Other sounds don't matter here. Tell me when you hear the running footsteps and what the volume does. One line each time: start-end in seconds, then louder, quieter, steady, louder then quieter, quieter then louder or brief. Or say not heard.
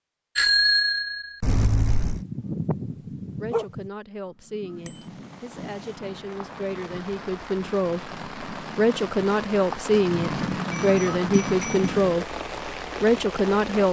not heard.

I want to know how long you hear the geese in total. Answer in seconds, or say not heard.
8 s.